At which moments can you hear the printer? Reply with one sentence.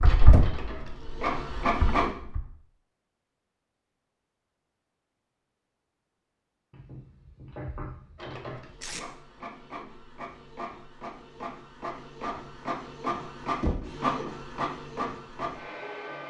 You can hear the printer from 0.0 to 2.1 s and from 8.2 to 16.2 s.